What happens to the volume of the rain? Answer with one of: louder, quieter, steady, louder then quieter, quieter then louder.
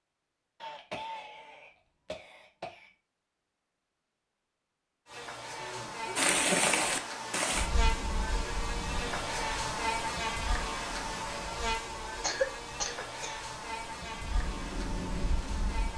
quieter then louder.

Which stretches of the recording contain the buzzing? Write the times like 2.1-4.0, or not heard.
5.0-15.9.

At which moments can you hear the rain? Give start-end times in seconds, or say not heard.
6.2-15.9.